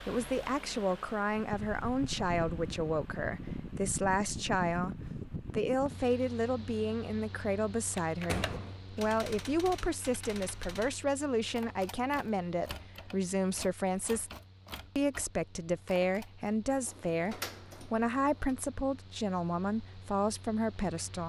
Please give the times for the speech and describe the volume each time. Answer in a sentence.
The speech can be heard from 0.1 to 14.3 s, at a steady volume; and from 14.9 to 21.2 s, at a steady volume.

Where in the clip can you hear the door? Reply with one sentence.
You can hear the door from 8.2 to 8.8 s and from 16.6 to 18.6 s.